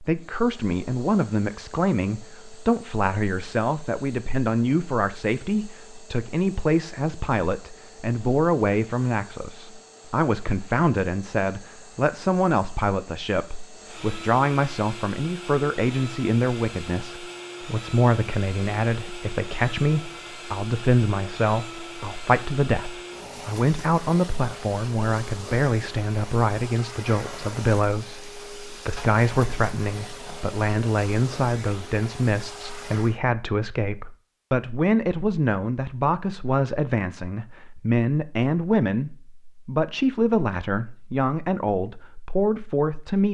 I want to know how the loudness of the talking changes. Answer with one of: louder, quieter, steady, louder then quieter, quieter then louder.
steady.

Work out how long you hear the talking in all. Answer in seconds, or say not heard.
43 s.